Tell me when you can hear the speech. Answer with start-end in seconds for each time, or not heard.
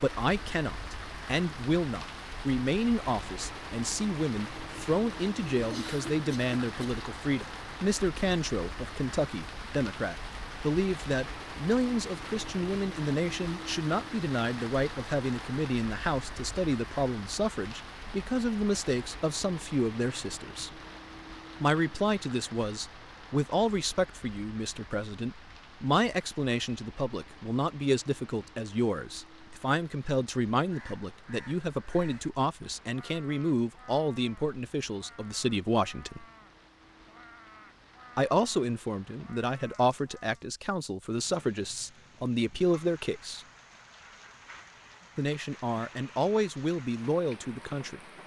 0.0-20.7, 21.6-36.2, 38.1-43.5, 45.1-48.0.